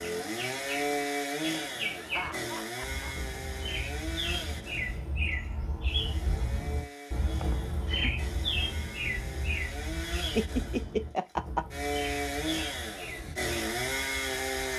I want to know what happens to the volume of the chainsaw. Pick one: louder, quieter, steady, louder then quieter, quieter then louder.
quieter then louder.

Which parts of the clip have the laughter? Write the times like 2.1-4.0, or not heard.
1.9-3.1, 7.4-8.2, 10.2-11.7.